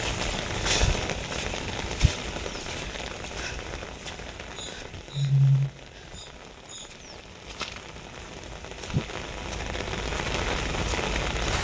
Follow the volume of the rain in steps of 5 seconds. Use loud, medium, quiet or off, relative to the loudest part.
loud, medium, loud.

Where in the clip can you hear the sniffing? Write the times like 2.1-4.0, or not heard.
4.5-6.8.